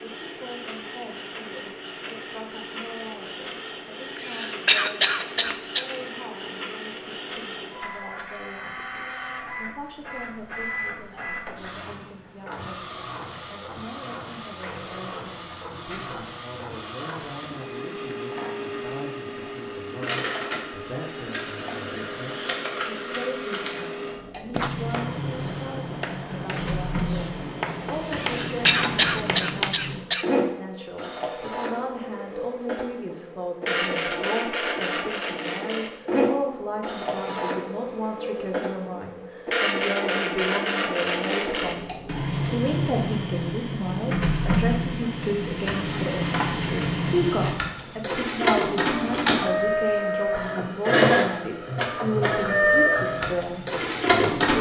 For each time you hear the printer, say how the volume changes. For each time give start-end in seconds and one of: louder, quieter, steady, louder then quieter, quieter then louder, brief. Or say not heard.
0.0-54.5 louder.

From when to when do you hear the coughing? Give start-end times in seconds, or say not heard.
4.2-5.8, 28.1-30.2.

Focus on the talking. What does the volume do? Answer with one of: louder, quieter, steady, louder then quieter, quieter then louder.
louder.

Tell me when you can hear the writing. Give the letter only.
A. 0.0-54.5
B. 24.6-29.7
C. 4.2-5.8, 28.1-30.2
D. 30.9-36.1
B.